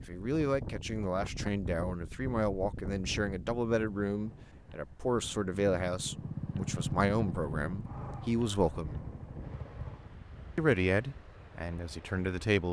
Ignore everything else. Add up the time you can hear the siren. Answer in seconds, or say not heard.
not heard.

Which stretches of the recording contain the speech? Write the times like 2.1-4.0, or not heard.
0.1-9.1, 10.6-12.6.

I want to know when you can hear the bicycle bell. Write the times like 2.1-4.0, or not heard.
not heard.